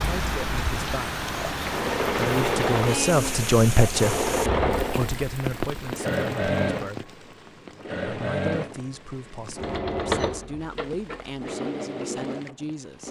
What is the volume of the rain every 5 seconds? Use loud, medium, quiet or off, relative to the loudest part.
loud, medium, quiet.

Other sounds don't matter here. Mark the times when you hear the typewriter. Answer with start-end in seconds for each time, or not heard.
not heard.